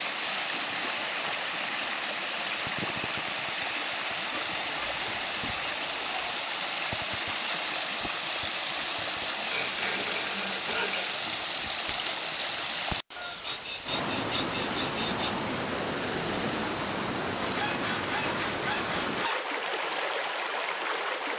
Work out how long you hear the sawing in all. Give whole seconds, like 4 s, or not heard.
9 s.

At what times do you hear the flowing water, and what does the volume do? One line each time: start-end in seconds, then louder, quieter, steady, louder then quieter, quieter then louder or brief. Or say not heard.
0.0-21.3 steady.